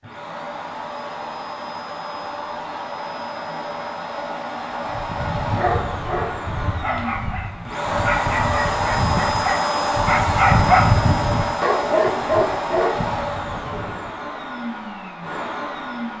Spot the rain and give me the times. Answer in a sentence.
The rain can't be heard in this clip.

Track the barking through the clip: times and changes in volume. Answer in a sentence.
The barking can be heard from 4.8 to 14.2 s, getting louder then quieter.